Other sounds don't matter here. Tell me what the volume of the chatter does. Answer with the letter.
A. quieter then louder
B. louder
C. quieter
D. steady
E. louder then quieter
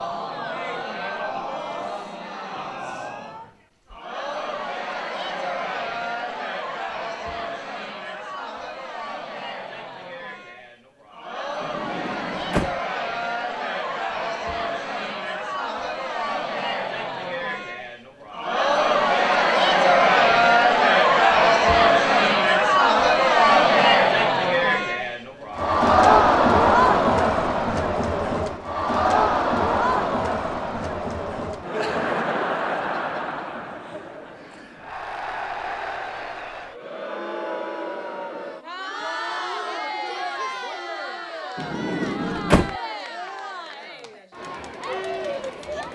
E.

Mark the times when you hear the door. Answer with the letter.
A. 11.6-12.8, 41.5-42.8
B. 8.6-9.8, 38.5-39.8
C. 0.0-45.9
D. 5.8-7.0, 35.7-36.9
A.